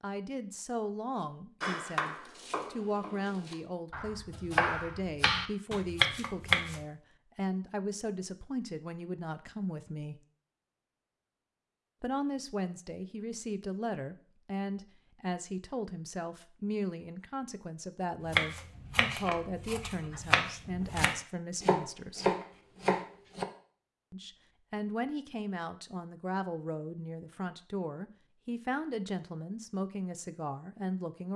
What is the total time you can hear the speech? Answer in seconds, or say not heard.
28 s.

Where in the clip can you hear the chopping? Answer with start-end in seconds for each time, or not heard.
1.6-6.8, 18.2-23.4.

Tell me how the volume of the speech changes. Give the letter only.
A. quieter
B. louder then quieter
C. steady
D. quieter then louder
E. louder
C.